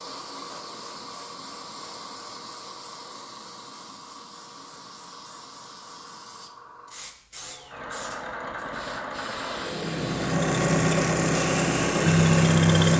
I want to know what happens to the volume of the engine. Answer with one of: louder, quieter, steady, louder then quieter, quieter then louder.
louder.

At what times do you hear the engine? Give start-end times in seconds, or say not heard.
7.3-12.9.